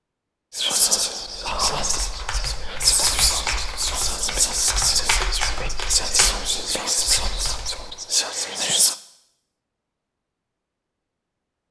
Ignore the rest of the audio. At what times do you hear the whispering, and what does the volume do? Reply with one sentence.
You can hear the whispering from 0.5 to 8.9 s, at a steady volume.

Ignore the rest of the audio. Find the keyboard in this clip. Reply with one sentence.
You can hear the keyboard from 1.2 to 8.0 s.